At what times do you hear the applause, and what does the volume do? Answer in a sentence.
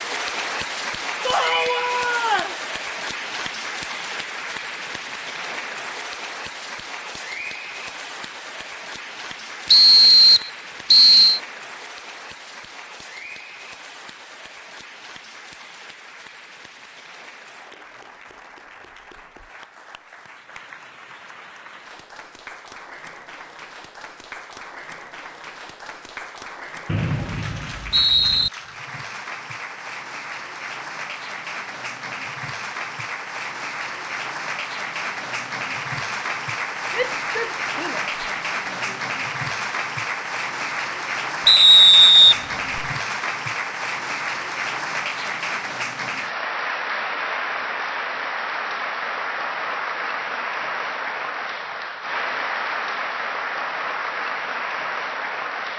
You can hear the applause from 0.0 to 55.7 s, getting quieter then louder.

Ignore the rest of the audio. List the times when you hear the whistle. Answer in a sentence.
The whistle can be heard from 9.7 to 11.4 s, from 26.9 to 28.5 s and from 41.5 to 42.9 s.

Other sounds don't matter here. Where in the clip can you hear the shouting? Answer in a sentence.
The shouting can be heard from 1.2 to 2.6 s and from 36.9 to 39.0 s.